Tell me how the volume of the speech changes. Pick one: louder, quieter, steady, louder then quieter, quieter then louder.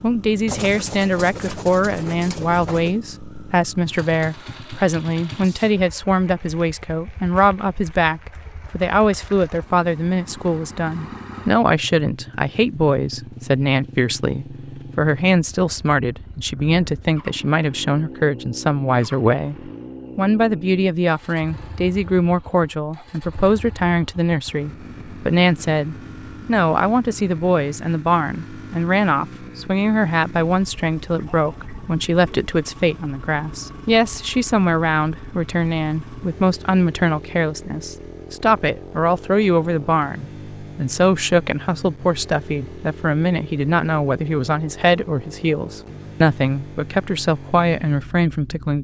steady.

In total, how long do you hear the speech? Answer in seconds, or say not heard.
49 s.